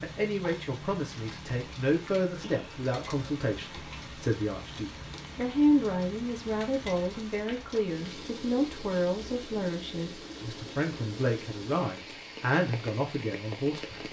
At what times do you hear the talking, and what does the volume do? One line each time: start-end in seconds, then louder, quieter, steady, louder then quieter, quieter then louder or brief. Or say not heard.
0.0-14.0 steady.